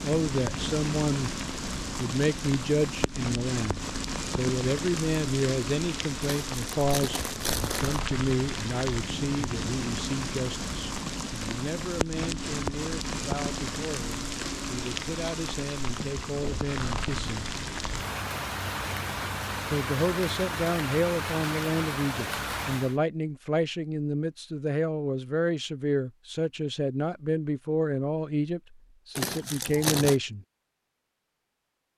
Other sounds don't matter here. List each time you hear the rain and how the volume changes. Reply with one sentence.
The rain can be heard from 0.0 to 22.9 s, at a steady volume.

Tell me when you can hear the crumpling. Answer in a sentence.
The crumpling can be heard from 6.5 to 8.0 s and from 29.1 to 30.2 s.